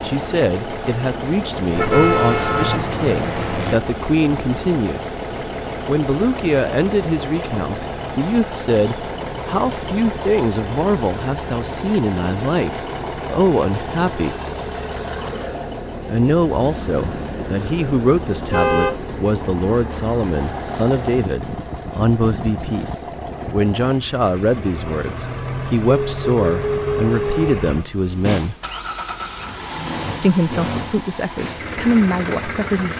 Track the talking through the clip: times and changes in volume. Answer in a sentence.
You can hear the talking from 0.0 to 5.0 s, at a steady volume; from 5.8 to 14.3 s, at a steady volume; from 16.1 to 28.6 s, at a steady volume; and briefly from 30.2 to 32.9 s.